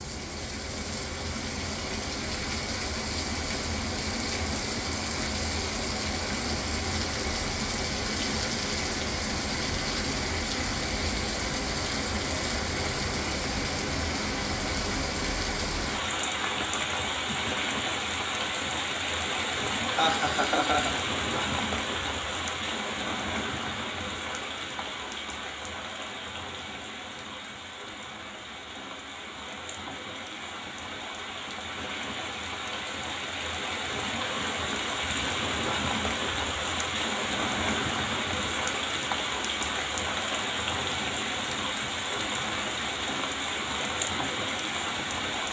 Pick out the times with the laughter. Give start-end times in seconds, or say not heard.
19.9-20.9.